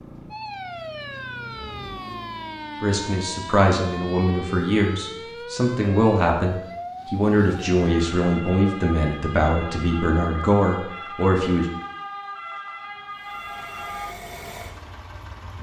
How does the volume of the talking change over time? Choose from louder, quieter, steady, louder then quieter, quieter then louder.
steady.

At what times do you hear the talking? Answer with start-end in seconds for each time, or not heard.
2.8-11.7.